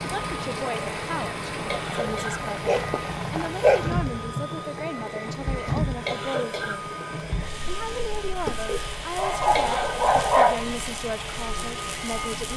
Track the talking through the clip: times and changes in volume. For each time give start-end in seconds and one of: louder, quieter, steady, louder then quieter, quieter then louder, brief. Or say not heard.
0.0-12.5 steady.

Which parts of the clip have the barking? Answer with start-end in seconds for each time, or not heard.
2.6-4.3, 8.7-10.7.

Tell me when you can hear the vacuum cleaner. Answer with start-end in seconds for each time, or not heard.
0.0-12.5.